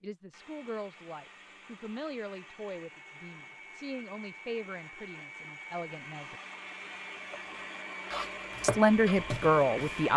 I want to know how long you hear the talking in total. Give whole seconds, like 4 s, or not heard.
8 s.